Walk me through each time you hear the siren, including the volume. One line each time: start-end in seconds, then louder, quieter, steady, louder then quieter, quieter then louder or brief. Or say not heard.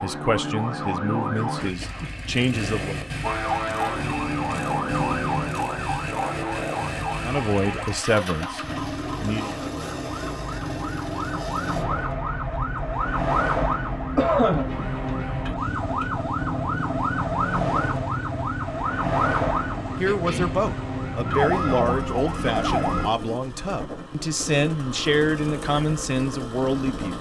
0.0-1.6 brief
3.2-23.1 quieter then louder.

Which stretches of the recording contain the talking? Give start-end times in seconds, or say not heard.
0.0-3.0, 7.2-9.6, 19.9-27.1.